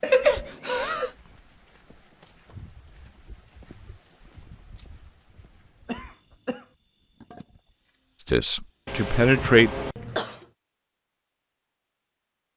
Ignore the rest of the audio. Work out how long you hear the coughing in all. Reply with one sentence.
You can hear the coughing for 4 seconds altogether.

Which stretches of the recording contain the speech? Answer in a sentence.
You can hear the speech from 8.2 to 9.7 s.